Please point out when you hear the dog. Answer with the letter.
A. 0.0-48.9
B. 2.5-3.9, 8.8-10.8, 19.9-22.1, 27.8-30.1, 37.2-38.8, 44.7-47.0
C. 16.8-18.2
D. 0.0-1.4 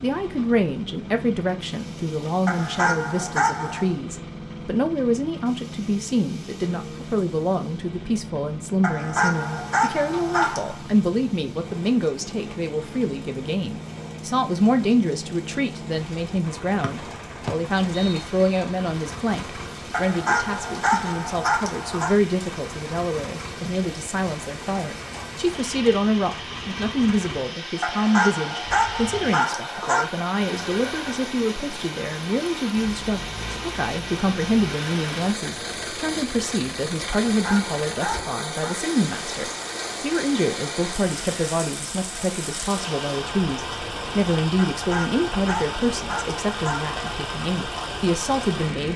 B.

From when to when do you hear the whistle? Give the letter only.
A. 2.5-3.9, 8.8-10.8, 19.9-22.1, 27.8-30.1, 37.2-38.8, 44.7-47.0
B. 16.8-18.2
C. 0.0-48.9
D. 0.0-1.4
B.